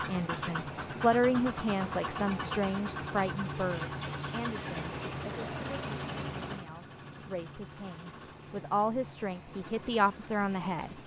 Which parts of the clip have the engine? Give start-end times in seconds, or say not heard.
0.0-11.0.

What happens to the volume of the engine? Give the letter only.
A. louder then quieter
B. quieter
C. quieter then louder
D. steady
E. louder
B.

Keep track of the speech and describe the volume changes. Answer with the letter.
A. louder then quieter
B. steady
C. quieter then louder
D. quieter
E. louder
C.